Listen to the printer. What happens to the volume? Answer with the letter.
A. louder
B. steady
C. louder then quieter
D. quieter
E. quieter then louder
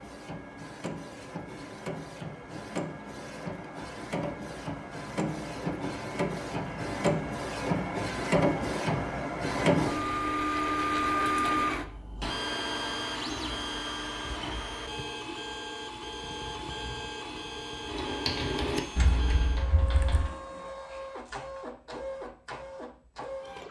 C.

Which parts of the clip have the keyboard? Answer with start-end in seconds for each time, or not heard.
17.9-20.3.